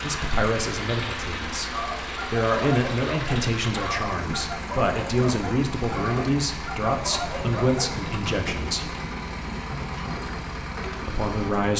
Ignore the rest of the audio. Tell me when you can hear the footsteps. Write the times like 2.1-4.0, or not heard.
not heard.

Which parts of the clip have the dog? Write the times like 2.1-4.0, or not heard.
1.7-8.0.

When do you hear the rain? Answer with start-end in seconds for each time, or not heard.
0.0-11.7.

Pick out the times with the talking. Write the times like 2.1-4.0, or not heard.
0.0-8.9, 11.1-11.7.